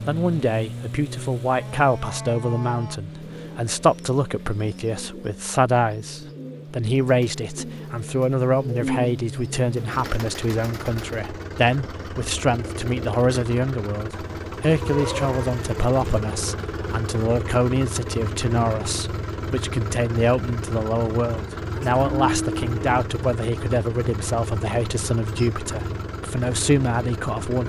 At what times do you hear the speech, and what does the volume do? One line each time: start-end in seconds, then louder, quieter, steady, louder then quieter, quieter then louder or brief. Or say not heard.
0.1-27.6 steady.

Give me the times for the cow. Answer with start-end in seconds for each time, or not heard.
1.4-3.0, 14.8-15.8, 21.7-22.8.